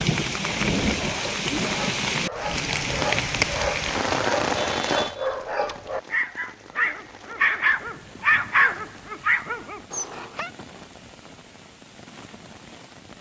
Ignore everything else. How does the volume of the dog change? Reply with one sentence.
The loudness of the dog goes up.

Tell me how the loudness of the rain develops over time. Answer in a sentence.
The volume of the rain goes down.